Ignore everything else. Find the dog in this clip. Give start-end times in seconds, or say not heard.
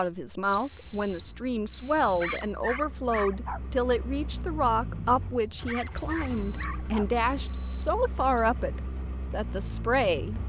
1.9-3.6, 5.4-7.0.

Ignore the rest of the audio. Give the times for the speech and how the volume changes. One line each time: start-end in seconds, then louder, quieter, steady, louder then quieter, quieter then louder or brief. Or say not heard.
0.0-10.4 steady.